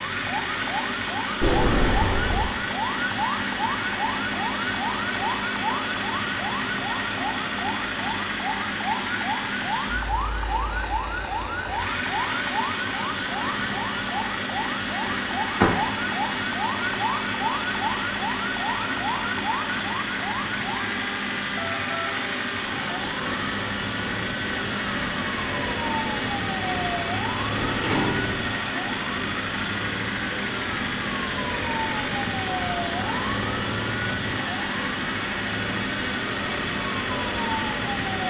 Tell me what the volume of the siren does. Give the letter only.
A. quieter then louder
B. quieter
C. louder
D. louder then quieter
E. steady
E.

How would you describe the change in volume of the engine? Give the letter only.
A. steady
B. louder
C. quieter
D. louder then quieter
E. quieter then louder
A.